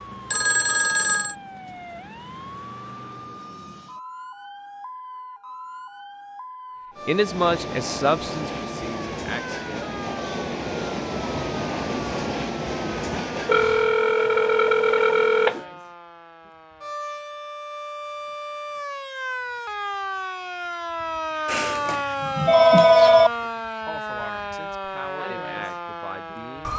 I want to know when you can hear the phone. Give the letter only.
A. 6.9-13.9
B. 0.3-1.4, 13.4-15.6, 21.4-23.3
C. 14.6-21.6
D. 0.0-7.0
B.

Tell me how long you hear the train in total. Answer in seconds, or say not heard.
7 s.